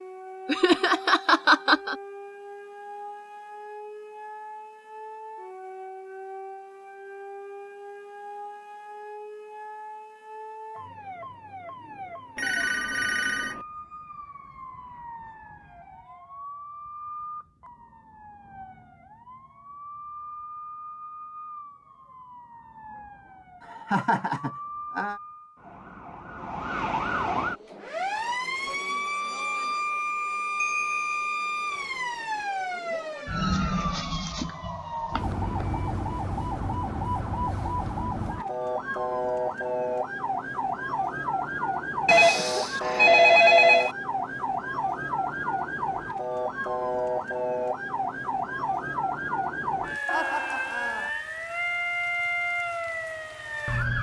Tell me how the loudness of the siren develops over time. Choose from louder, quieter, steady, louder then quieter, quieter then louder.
louder.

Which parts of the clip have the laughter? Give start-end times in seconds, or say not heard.
0.5-1.9, 23.6-25.2, 50.0-51.1.